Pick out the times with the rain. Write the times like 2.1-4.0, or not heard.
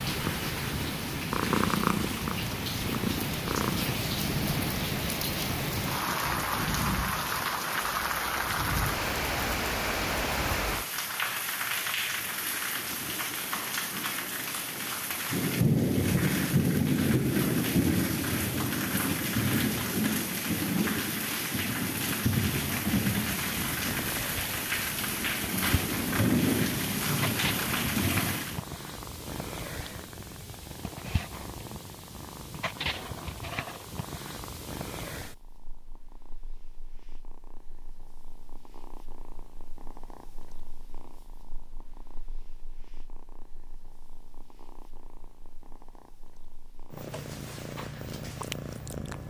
0.0-28.6.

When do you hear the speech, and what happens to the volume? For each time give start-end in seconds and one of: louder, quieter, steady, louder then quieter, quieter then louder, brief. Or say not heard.
not heard.